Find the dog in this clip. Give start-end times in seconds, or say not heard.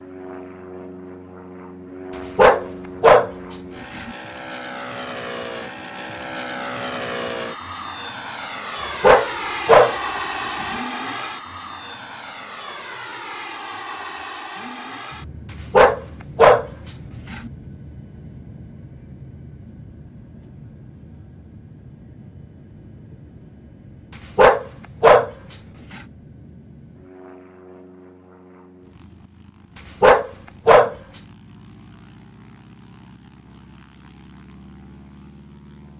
2.4-4.1, 9.0-10.8, 15.7-17.5, 24.4-26.0, 30.0-30.9.